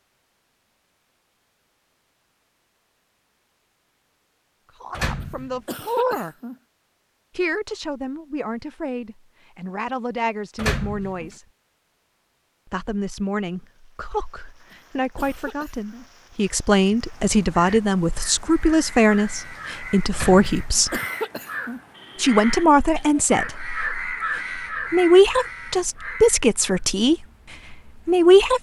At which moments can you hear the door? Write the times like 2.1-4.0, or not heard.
4.9-5.6, 10.6-11.3, 20.1-20.9.